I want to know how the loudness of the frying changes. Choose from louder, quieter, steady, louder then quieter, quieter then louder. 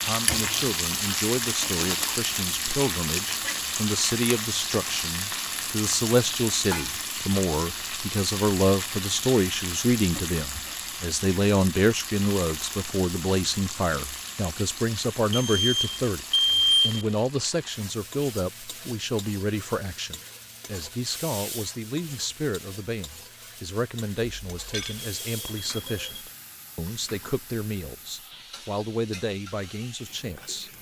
quieter.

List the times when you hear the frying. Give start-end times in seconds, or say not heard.
0.0-30.7.